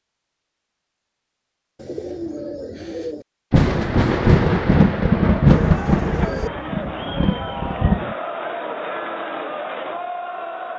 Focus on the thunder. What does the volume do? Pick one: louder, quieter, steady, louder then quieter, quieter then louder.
quieter.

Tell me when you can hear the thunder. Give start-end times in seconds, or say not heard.
3.5-8.2.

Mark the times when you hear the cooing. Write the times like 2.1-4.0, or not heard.
1.8-3.2, 5.5-6.5.